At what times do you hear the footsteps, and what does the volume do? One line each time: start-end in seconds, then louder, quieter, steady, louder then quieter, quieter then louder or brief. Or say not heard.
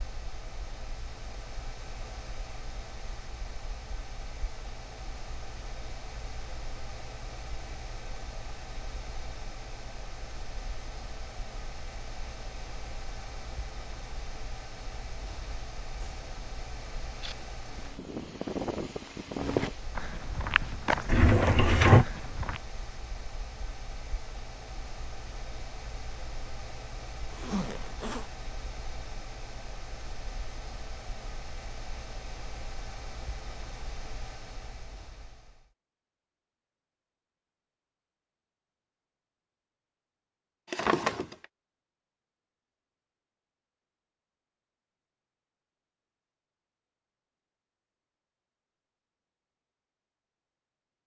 17.2-22.6 louder then quieter.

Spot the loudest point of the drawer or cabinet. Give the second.
22 s.